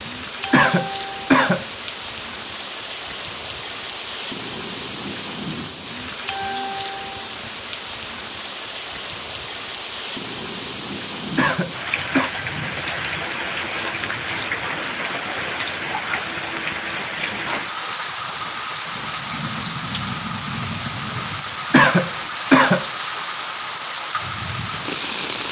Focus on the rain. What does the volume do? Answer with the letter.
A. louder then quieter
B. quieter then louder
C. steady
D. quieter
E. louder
C.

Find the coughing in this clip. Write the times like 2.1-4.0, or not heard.
0.5-1.6, 11.3-12.3, 21.7-22.9.